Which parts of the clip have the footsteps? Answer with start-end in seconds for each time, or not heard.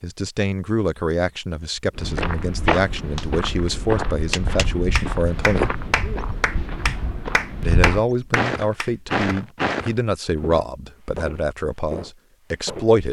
1.9-12.9.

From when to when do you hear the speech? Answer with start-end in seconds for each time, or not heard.
0.0-5.8, 7.6-13.0.